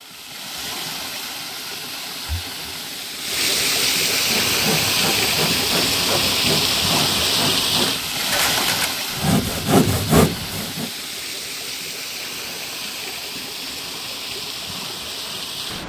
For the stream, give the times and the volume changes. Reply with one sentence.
You can hear the stream from 0.0 to 15.8 s, getting louder then quieter.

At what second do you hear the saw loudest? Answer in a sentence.
The loudest moment of the saw is at 10 seconds.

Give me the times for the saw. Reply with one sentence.
You can hear the saw from 4.2 to 10.9 s.